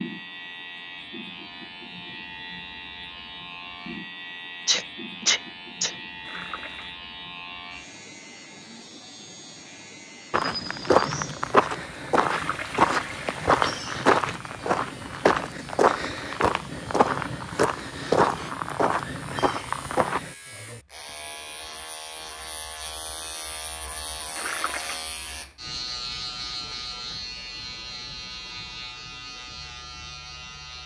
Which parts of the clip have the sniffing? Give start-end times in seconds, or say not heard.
4.7-6.0.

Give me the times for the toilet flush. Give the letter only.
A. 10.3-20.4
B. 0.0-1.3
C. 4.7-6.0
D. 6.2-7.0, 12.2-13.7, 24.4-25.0
D.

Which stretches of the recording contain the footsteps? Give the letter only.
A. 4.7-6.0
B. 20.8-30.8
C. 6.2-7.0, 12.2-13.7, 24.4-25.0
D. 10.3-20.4
D.